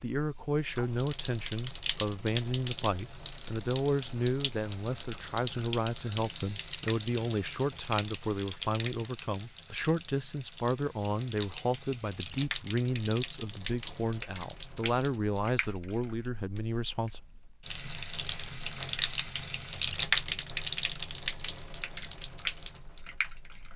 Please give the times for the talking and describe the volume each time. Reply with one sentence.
You can hear the talking from 0.0 to 17.2 s, at a steady volume.